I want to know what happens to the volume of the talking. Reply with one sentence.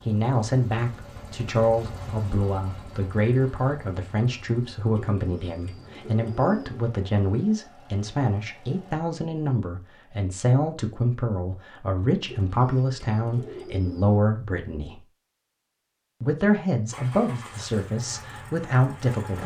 The loudness of the talking stays about the same.